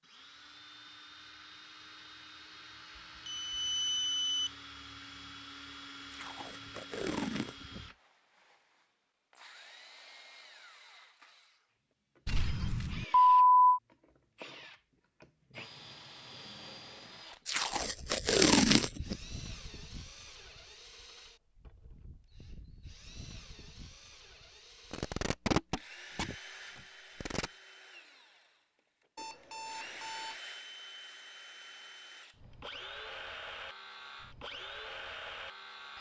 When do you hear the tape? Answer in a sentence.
You can hear the tape from 6.1 to 7.8 s, from 17.4 to 19.1 s and from 24.9 to 27.5 s.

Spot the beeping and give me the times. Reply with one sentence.
The beeping can be heard from 3.2 to 4.5 s, from 12.2 to 13.8 s and from 29.1 to 30.4 s.